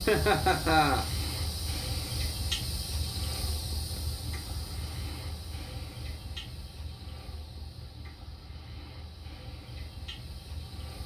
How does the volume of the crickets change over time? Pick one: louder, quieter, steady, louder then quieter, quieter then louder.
quieter.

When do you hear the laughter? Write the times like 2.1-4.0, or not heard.
0.1-1.1.